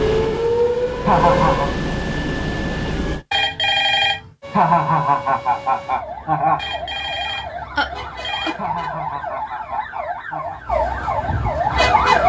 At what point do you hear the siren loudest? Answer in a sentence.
The loudest moment of the siren is at 12 seconds.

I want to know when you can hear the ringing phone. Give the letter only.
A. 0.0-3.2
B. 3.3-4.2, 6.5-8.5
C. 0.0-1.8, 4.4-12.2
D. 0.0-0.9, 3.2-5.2
B.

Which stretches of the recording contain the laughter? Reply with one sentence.
The laughter can be heard from 1.1 to 1.7 s, from 4.5 to 6.6 s and from 8.6 to 10.6 s.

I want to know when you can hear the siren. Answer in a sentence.
You can hear the siren from 0.0 to 1.8 s and from 4.4 to 12.2 s.